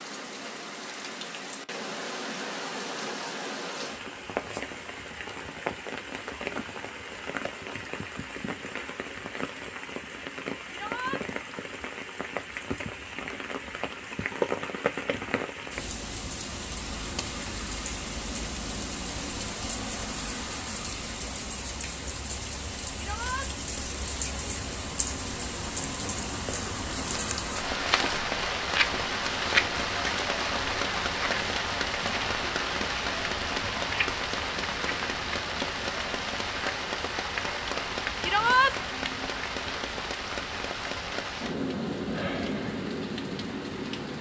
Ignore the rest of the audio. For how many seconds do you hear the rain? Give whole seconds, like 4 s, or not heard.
44 s.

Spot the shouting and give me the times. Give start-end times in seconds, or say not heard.
10.7-11.2, 22.9-23.5, 38.2-38.8.